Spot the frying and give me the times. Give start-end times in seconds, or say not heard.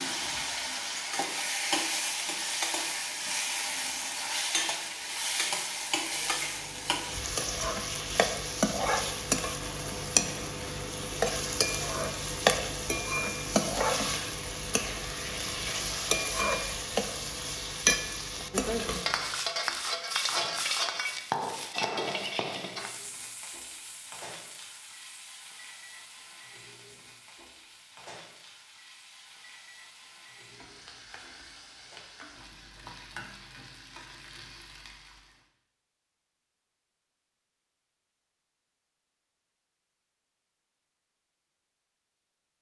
0.0-35.5.